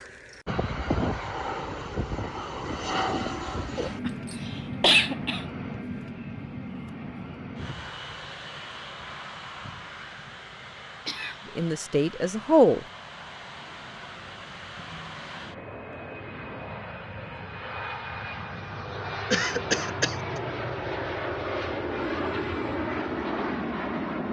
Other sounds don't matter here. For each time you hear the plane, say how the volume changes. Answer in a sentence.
You can hear the plane from 0.0 to 24.2 s, getting quieter then louder.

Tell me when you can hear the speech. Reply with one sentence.
The speech can be heard from 11.6 to 12.8 s.